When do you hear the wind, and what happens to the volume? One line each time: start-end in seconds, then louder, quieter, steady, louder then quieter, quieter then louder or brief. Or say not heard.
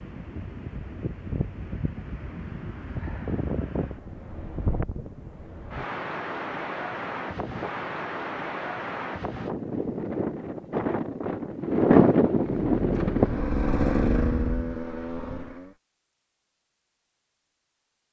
0.0-14.8 louder.